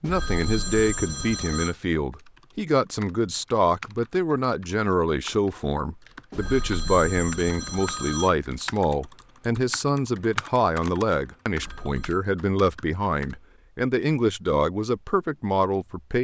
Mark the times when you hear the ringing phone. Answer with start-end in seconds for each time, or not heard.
0.0-1.8, 6.3-8.3, 11.5-12.2.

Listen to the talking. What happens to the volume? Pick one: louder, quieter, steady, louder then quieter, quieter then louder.
steady.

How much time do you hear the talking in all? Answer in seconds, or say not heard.
16 s.